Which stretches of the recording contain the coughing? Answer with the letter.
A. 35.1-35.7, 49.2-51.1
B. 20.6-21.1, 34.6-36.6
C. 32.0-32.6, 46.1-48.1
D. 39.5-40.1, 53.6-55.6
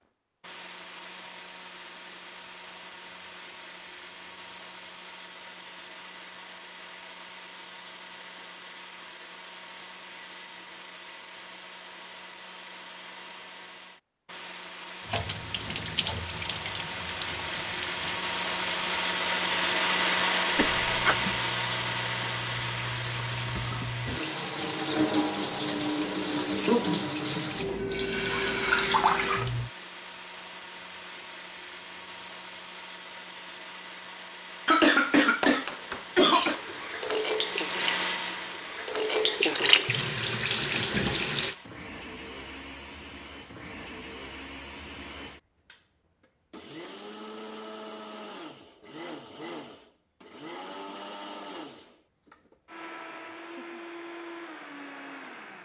B.